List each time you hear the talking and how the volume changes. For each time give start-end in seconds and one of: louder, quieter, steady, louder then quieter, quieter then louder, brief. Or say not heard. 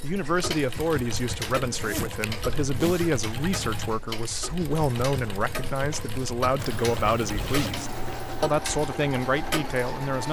0.0-10.2 steady.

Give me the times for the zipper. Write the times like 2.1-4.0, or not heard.
1.6-3.1, 6.5-8.6.